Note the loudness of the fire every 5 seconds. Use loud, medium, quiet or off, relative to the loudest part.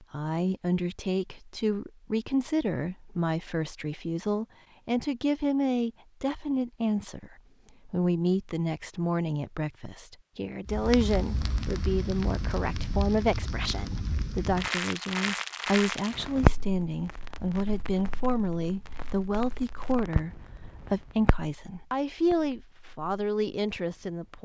off, off, loud, loud, medium.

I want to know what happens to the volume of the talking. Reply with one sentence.
The loudness of the talking stays about the same.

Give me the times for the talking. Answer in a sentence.
The talking can be heard from 0.0 to 24.3 s.